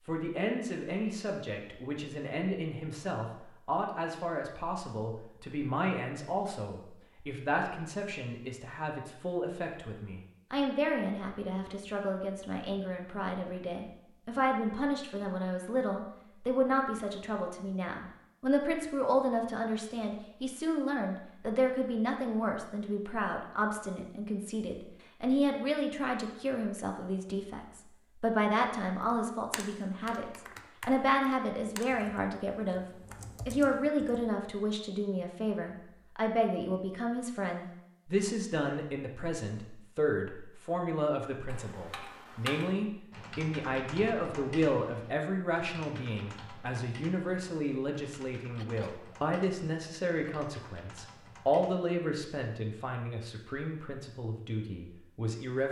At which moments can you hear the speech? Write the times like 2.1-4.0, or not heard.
0.0-32.9, 33.5-55.6.